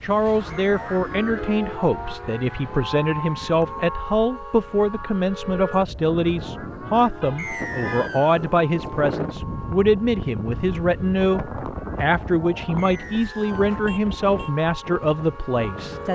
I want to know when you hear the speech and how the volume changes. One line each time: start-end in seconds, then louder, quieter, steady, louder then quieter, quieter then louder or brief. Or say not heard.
0.0-16.1 steady.